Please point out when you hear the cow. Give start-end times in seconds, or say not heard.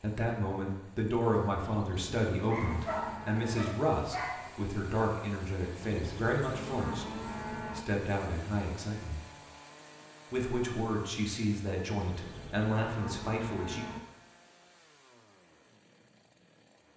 1.7-3.6, 5.8-7.8, 11.9-14.0.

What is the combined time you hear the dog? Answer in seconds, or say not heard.
2 s.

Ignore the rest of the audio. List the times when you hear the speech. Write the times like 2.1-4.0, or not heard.
0.0-7.2, 7.8-9.2, 10.3-13.8.